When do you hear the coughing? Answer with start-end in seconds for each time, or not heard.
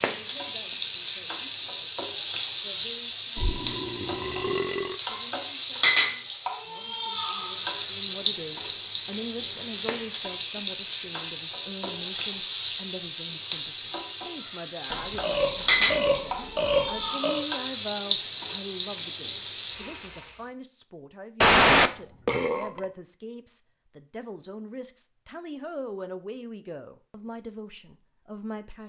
not heard.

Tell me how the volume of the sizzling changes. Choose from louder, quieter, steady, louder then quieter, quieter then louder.
steady.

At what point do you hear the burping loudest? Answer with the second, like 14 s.
22 s.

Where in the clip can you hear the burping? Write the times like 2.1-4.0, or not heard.
3.4-5.0, 14.9-17.4, 21.4-22.9.